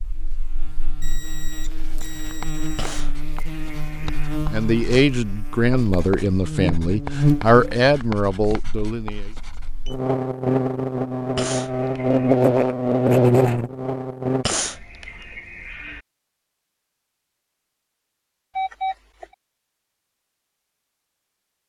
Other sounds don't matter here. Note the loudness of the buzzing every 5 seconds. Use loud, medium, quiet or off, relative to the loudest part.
quiet, medium, loud, off, off.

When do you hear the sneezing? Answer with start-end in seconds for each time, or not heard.
2.8-4.3, 11.3-12.3, 14.4-16.0.